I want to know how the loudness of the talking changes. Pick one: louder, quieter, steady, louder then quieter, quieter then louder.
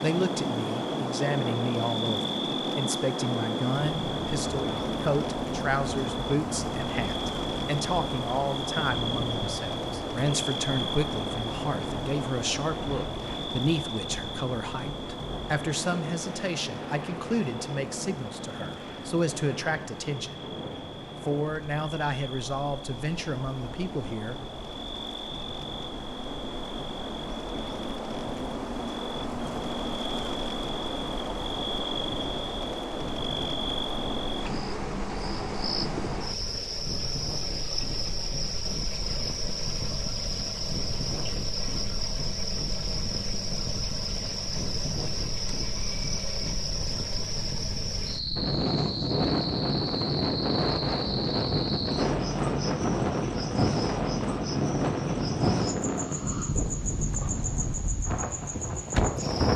steady.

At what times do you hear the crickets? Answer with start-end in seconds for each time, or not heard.
0.0-59.5.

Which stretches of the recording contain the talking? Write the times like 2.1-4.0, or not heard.
0.0-20.4, 21.2-24.4.